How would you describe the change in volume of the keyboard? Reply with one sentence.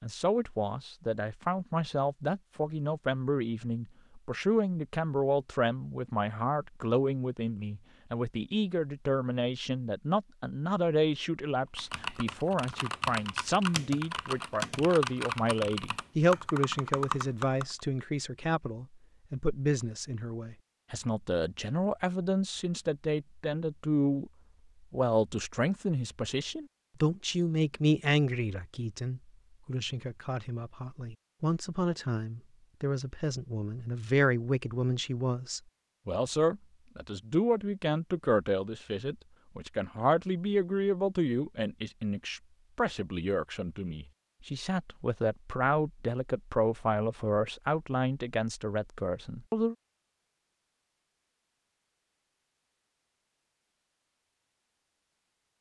The loudness of the keyboard stays about the same.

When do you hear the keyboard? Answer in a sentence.
You can hear the keyboard from 11.8 to 17.8 s.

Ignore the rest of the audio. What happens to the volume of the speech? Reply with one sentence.
The volume of the speech stays about the same.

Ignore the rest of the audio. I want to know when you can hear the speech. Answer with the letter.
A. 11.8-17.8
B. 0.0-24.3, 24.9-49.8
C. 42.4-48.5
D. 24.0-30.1
B.